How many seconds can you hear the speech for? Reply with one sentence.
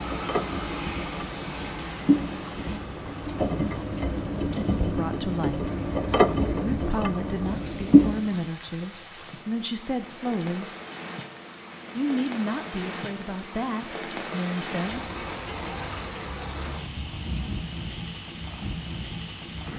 The speech can be heard for 8 seconds in total.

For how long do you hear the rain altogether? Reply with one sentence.
The rain can be heard for 20 seconds in total.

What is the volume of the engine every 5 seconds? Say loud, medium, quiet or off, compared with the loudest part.
medium, loud, off, off.